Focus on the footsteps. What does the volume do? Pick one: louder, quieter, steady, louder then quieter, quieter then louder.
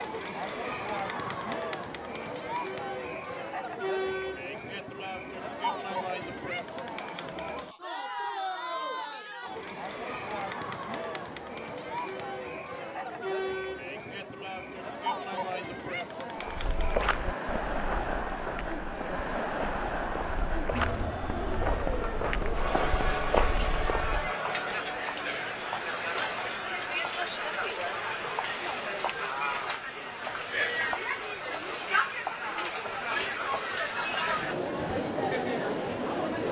quieter then louder.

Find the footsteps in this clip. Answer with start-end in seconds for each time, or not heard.
16.4-24.3.